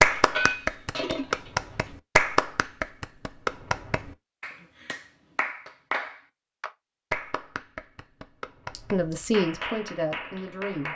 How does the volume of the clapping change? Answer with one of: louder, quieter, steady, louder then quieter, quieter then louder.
quieter.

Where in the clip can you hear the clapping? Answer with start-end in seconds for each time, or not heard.
0.0-10.9.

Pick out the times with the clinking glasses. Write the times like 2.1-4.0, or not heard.
0.1-1.9, 8.7-9.2.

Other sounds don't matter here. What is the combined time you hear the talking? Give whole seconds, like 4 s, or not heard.
2 s.